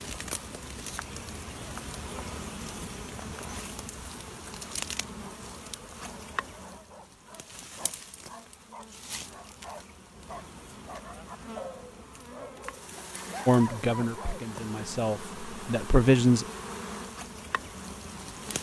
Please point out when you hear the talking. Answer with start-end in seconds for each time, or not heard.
13.4-16.4.